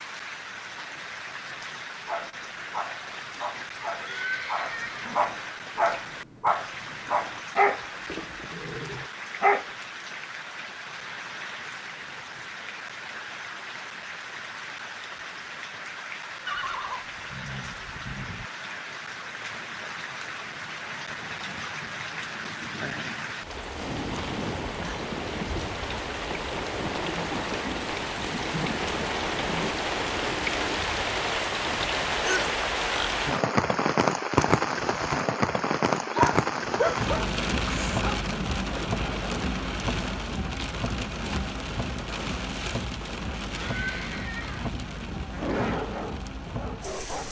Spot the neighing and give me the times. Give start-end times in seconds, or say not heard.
4.0-5.2, 16.4-18.4, 43.5-44.8.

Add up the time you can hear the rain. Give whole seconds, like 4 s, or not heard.
47 s.